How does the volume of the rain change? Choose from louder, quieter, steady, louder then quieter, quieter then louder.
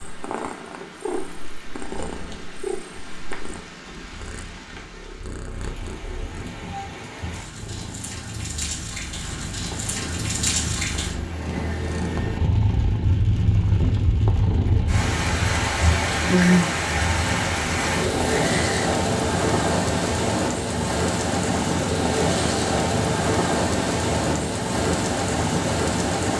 louder.